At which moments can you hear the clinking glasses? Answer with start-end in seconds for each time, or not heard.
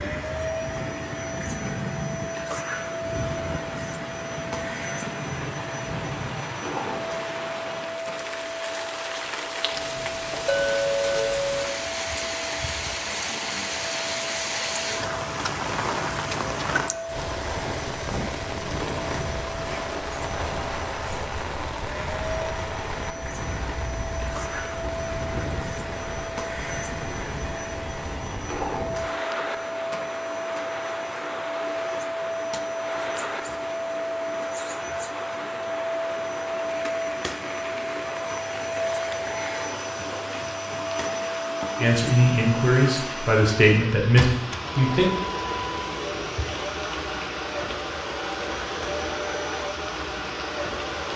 10.4-11.7.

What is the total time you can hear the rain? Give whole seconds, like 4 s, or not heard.
51 s.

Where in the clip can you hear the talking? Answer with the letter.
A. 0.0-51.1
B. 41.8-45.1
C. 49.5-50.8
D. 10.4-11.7
B.